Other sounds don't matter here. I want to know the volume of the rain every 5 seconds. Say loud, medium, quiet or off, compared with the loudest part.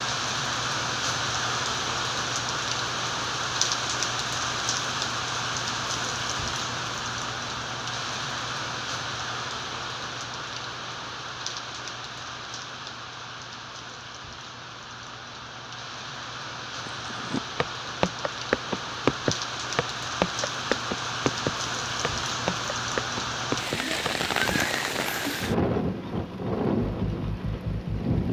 loud, loud, medium, medium, loud, loud.